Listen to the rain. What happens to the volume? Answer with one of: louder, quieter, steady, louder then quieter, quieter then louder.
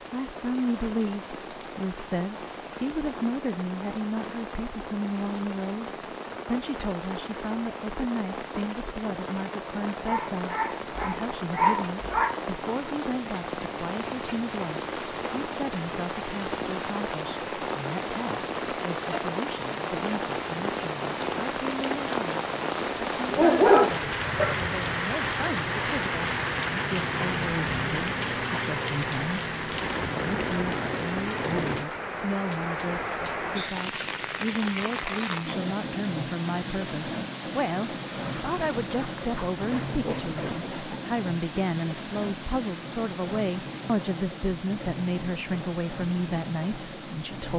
louder then quieter.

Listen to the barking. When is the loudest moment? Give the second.
24 s.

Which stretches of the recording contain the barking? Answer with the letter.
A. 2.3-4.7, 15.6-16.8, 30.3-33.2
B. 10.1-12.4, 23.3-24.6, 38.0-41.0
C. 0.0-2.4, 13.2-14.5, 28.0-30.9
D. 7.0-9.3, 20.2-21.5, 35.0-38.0
B.